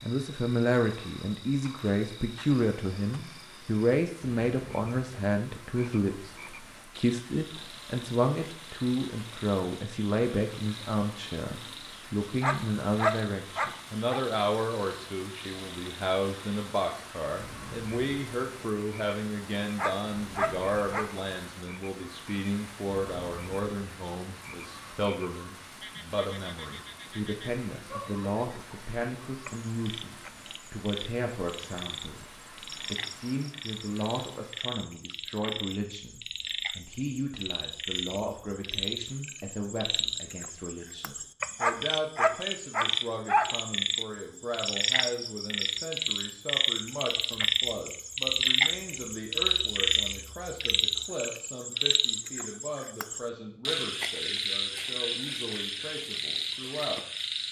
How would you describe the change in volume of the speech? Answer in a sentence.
The loudness of the speech goes down.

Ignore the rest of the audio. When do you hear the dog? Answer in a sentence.
The dog can be heard from 12.4 to 14.2 s, from 19.8 to 21.1 s and from 41.6 to 43.5 s.